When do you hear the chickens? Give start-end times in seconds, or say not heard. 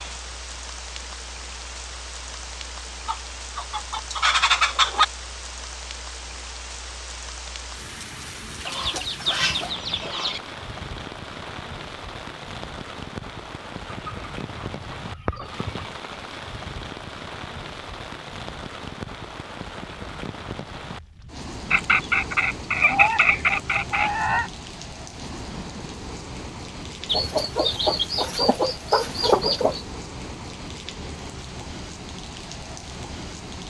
3.0-5.0, 8.7-10.4, 13.9-15.8, 21.7-24.5, 27.1-29.8.